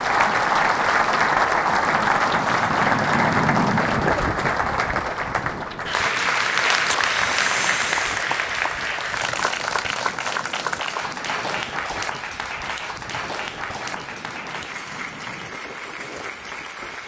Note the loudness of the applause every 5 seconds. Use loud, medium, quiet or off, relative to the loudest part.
loud, loud, medium, quiet.